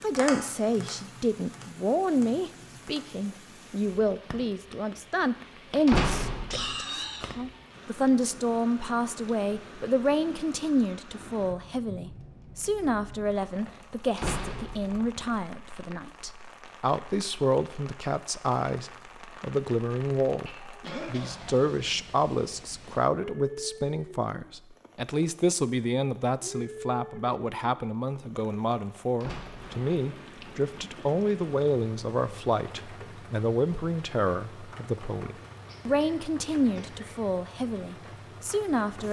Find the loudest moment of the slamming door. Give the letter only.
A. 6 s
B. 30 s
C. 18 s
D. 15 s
A.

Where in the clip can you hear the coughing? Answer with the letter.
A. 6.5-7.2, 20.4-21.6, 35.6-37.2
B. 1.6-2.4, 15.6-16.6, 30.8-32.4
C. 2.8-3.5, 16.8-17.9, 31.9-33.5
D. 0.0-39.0
A.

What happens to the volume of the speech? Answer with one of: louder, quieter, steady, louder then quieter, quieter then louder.
steady.